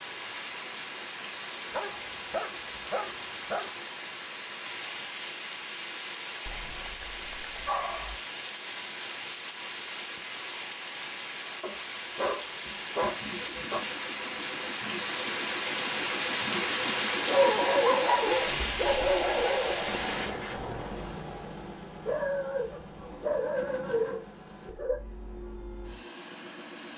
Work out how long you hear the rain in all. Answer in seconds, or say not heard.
20 s.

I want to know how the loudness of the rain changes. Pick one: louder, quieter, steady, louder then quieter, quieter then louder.
louder.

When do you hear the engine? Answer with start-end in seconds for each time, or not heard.
13.1-26.9.